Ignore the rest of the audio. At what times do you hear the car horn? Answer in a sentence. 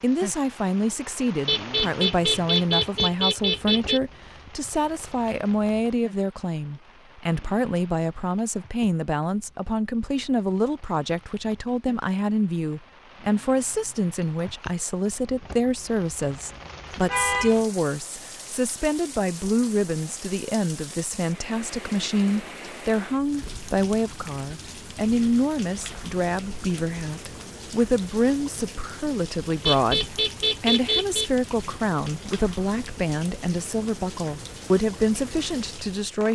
The car horn can be heard from 1.4 to 4.0 s, from 17.1 to 17.6 s and from 29.6 to 31.3 s.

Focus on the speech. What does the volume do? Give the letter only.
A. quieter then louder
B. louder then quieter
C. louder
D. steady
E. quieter
D.